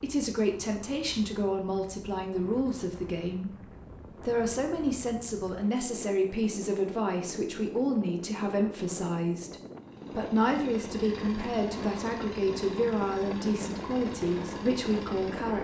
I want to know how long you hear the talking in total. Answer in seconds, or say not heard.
15 s.